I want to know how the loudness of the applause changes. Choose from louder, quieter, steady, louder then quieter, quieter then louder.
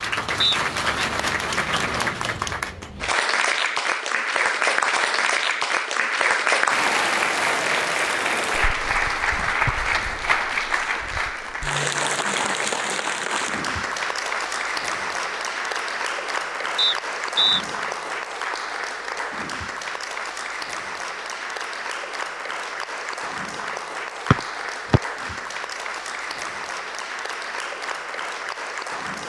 quieter.